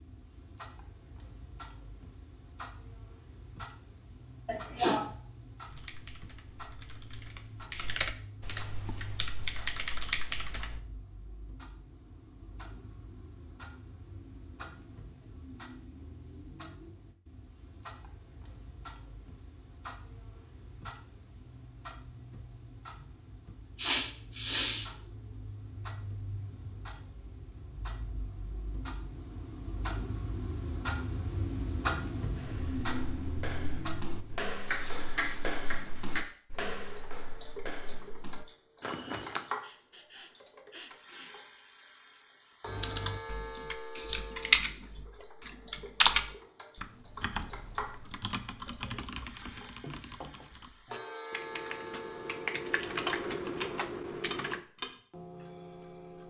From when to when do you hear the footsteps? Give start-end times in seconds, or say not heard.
32.4-39.6.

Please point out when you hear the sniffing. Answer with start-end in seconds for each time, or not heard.
4.5-5.0, 23.8-24.9, 39.6-41.3.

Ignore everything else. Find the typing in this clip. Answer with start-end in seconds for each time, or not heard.
5.7-10.8, 42.6-54.6.